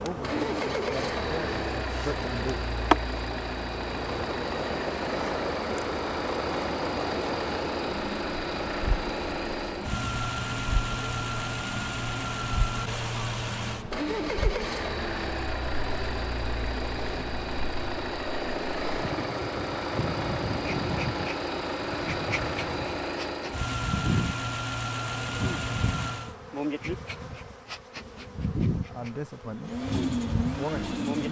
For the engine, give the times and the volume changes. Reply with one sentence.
You can hear the engine from 0.1 to 26.4 s, at a steady volume; and briefly from 29.6 to 31.2 s.